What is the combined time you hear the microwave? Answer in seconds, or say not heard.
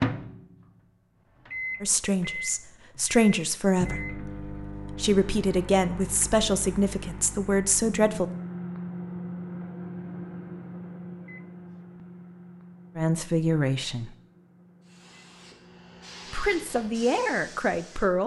18 s.